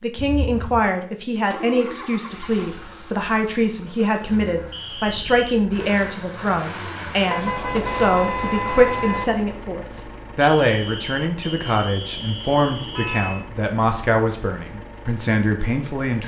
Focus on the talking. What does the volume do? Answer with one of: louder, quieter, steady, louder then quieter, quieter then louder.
steady.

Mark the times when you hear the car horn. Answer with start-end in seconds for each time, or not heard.
0.1-0.8, 7.2-9.2, 12.8-13.4.